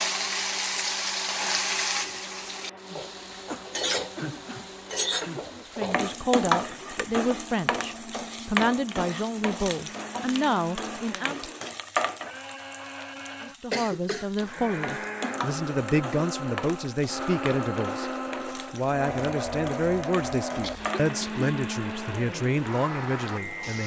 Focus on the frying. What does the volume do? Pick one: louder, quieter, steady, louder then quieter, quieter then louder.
quieter.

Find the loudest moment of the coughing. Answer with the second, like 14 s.
14 s.